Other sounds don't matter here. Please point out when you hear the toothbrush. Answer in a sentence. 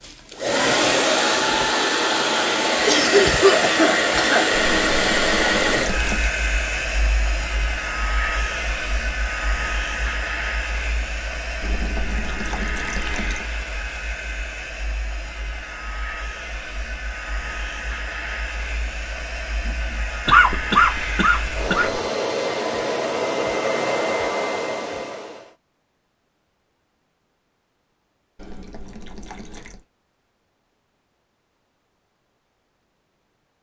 The toothbrush can't be heard in this clip.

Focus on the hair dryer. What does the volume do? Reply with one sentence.
The volume of the hair dryer goes down, then up.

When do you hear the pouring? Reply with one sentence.
You can hear the pouring from 4.5 to 6.3 s, from 11.6 to 13.4 s and from 28.4 to 29.9 s.